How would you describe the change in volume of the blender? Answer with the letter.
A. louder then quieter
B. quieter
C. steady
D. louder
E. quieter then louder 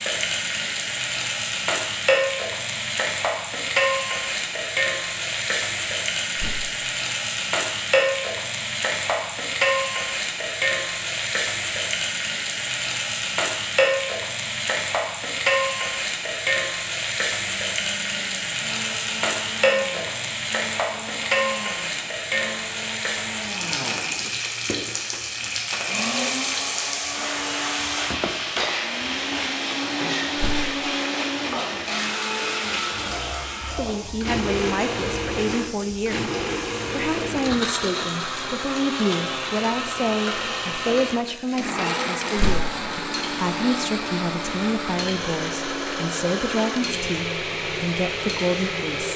D.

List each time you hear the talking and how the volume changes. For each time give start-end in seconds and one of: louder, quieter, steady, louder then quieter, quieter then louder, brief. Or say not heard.
33.8-49.1 steady.